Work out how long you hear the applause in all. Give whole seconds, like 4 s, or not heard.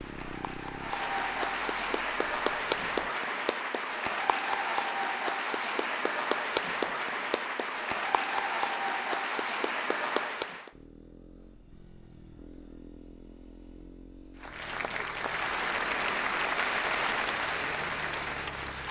15 s.